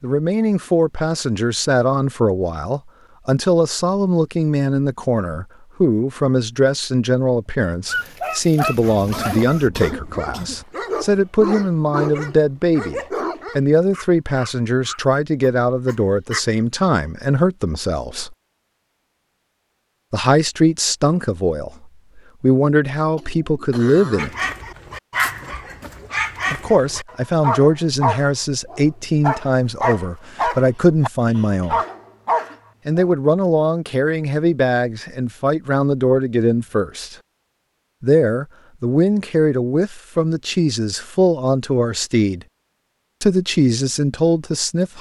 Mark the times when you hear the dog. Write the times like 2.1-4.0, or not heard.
7.8-16.4, 24.1-33.1.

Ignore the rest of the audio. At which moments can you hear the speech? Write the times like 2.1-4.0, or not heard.
0.0-18.4, 20.1-24.4, 26.5-31.8, 32.9-37.1, 38.0-42.5, 43.2-44.9.